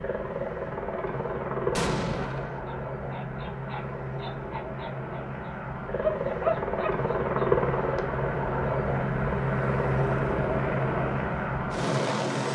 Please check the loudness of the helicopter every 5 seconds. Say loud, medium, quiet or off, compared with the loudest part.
medium, loud, loud.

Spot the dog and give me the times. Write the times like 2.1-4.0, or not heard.
2.6-7.5.